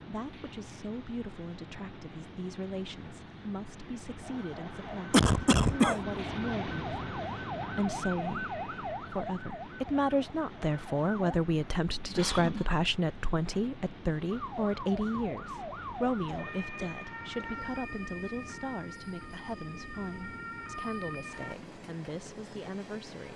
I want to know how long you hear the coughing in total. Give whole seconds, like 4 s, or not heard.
3 s.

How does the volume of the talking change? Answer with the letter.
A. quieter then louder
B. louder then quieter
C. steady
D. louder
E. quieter
B.